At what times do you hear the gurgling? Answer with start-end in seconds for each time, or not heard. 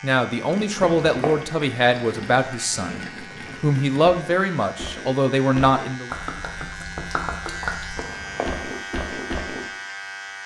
0.3-9.7.